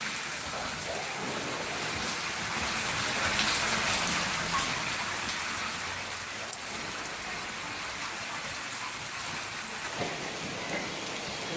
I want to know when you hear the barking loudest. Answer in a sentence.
The loudest moment of the barking is at 1 second.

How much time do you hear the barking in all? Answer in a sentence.
The barking can be heard for 3 seconds in total.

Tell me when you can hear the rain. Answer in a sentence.
The rain can be heard from 0.0 to 11.5 s.